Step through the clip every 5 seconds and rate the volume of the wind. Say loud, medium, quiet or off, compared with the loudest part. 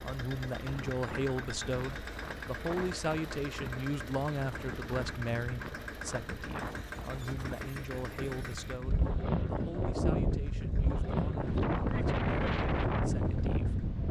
quiet, medium, loud.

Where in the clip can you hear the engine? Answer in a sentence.
You can hear the engine from 0.0 to 14.0 s.